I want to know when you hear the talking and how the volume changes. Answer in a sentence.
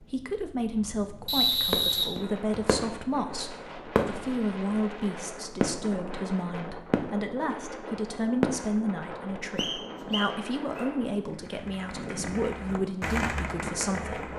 You can hear the talking from 0.0 to 14.3 s, at a steady volume.